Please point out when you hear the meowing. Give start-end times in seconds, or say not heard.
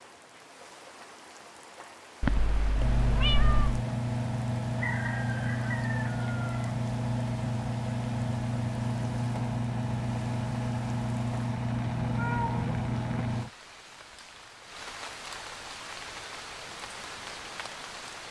2.2-3.9, 11.9-13.1.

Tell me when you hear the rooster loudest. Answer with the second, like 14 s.
5 s.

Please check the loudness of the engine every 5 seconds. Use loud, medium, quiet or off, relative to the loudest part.
loud, loud, loud, off.